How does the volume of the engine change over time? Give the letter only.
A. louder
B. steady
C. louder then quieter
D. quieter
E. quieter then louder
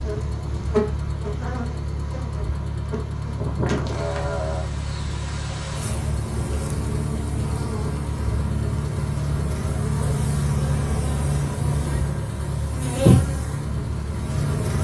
B.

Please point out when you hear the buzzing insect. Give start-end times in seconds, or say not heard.
0.0-14.8.